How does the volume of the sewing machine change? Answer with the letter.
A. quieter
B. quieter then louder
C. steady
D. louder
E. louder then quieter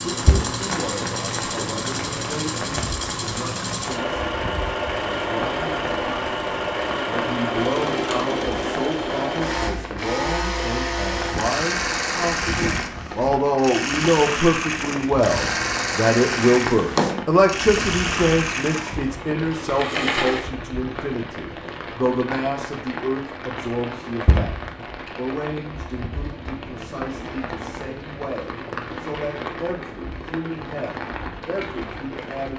C.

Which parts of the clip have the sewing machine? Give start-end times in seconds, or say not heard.
0.0-20.5.